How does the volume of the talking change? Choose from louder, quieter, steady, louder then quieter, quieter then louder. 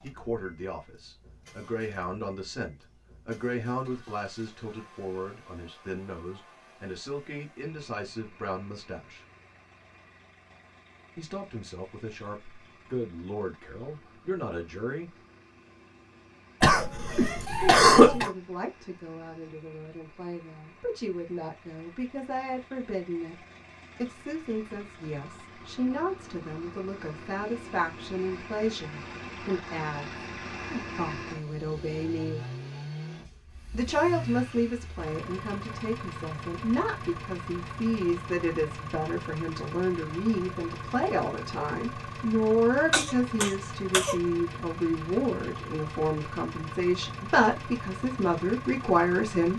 louder.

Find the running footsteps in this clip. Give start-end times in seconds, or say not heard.
not heard.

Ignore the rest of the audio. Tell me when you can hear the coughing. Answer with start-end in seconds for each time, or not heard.
16.6-18.3, 42.9-44.1.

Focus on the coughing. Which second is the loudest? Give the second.
18 s.